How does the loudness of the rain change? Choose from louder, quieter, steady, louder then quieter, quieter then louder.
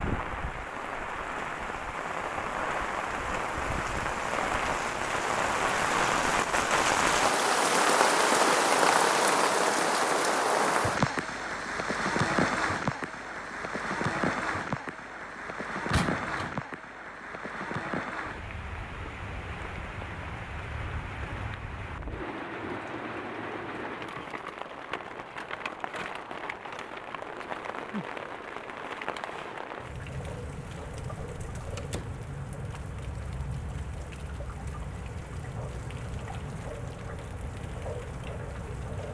quieter.